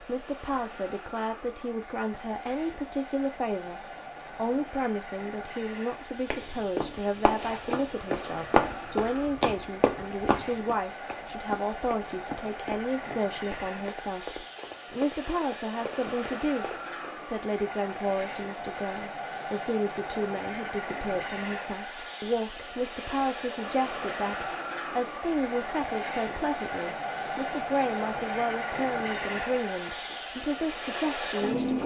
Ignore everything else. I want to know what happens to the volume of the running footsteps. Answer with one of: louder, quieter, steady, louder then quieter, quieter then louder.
quieter.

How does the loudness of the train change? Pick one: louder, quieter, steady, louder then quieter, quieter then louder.
louder.